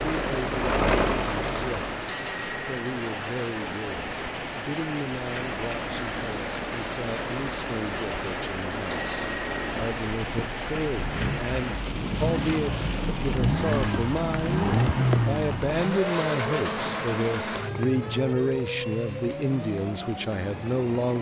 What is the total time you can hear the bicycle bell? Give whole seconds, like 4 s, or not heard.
2 s.